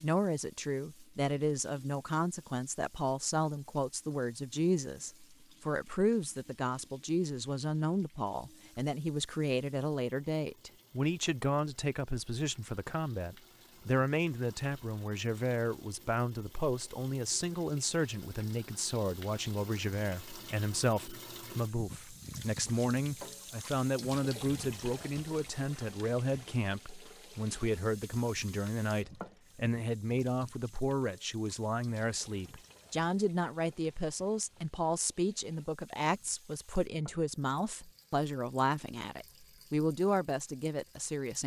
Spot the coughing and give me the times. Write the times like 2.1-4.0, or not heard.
not heard.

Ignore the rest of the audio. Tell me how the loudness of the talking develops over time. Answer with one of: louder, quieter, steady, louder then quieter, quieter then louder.
steady.